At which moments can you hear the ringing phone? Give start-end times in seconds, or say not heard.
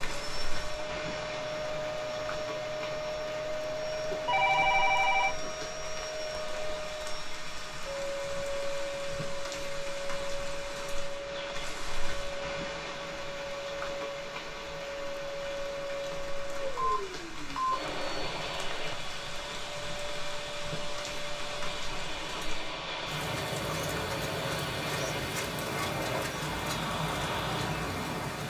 4.1-5.5, 16.8-17.8.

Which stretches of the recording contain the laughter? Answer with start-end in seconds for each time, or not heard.
not heard.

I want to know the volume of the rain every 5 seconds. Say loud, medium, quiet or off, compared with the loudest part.
medium, medium, medium, medium, loud, loud.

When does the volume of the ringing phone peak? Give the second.
5 s.